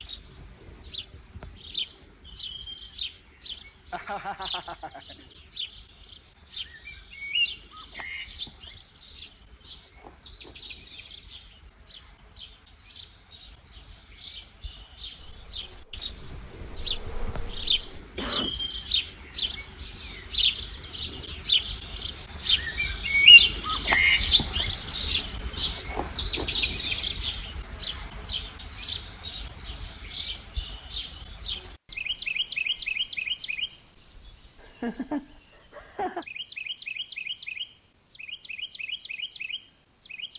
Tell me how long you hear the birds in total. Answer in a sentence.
The birds can be heard for 40 seconds in total.